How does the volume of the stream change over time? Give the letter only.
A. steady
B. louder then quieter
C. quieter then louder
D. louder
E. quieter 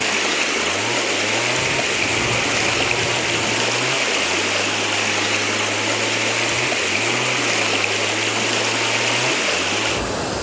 A.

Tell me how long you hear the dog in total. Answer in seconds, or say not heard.
not heard.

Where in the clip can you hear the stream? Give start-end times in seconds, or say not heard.
0.0-10.3.